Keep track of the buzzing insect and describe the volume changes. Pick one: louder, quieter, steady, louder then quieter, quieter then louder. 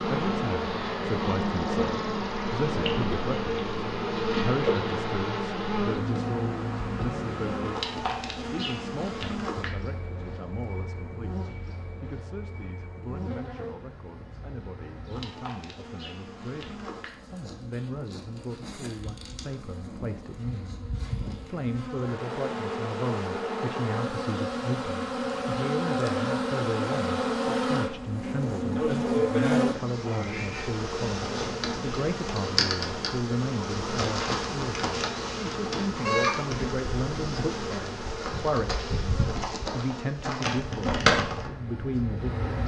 quieter then louder.